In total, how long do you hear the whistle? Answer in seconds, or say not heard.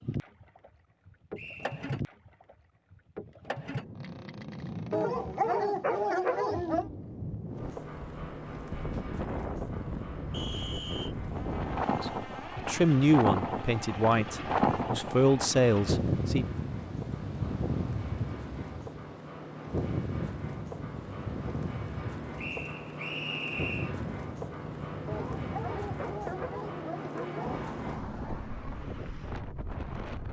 3 s.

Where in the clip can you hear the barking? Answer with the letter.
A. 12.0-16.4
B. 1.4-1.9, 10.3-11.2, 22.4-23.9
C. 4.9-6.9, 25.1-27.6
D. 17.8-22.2
C.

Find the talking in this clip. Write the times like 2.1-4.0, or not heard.
12.0-16.4.